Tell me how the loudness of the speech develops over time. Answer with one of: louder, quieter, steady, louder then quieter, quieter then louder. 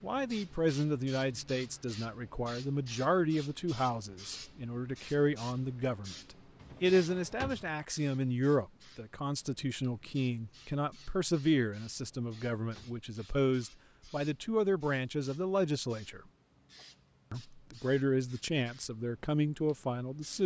steady.